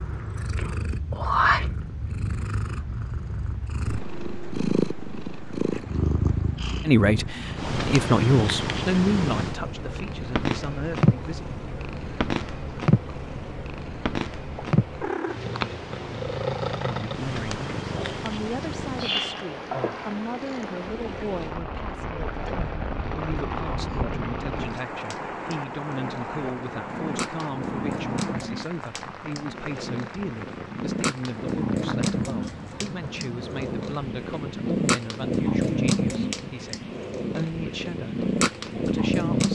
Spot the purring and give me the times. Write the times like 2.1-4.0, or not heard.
0.0-39.5.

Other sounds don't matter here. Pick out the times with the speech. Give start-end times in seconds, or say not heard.
6.8-11.4, 16.8-39.5.